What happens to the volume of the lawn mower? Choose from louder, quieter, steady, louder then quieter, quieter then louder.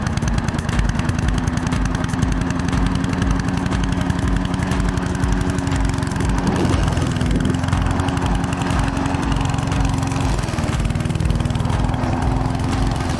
steady.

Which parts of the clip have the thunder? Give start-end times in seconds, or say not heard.
6.1-7.6.